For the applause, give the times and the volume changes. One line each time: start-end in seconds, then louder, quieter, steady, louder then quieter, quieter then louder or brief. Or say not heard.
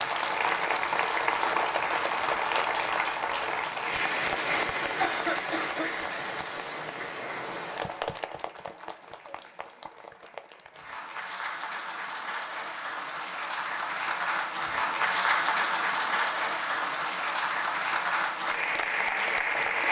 0.0-19.8 quieter then louder.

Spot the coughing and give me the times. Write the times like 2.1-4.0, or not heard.
5.0-5.9.